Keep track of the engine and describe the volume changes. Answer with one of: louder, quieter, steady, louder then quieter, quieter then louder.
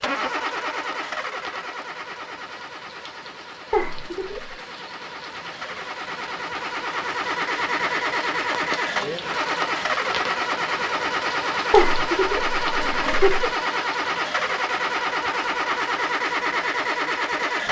louder.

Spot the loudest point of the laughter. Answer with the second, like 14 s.
12 s.